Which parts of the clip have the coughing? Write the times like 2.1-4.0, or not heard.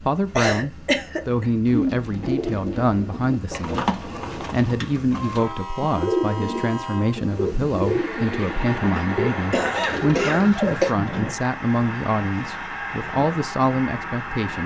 0.3-1.4, 9.5-10.9.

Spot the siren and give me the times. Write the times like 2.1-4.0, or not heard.
not heard.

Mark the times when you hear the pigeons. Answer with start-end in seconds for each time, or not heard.
1.6-11.3.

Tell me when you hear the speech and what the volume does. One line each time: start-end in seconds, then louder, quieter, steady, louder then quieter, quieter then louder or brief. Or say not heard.
0.0-14.6 steady.